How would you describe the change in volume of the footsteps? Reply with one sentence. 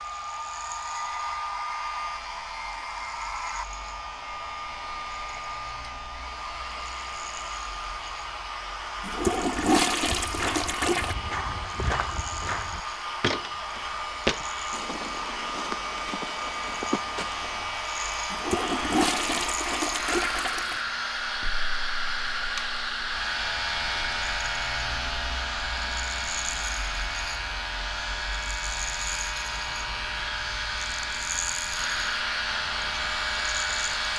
The volume of the footsteps goes up, then down.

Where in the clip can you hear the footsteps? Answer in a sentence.
The footsteps can be heard from 10.1 to 17.8 s.